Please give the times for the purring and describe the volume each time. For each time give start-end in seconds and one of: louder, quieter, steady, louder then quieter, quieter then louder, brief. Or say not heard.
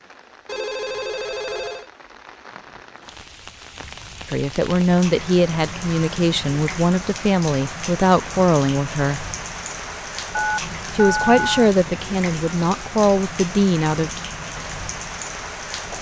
not heard.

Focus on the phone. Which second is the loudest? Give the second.
11 s.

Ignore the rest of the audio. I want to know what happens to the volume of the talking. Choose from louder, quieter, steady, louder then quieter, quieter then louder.
steady.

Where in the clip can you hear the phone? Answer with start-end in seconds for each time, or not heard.
0.5-1.9, 10.3-11.7.